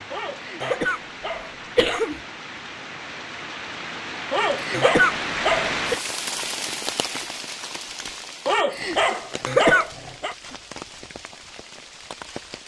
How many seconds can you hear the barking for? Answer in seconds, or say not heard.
5 s.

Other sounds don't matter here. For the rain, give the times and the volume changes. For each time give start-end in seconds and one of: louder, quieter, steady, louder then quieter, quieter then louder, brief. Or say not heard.
0.0-12.6 louder then quieter.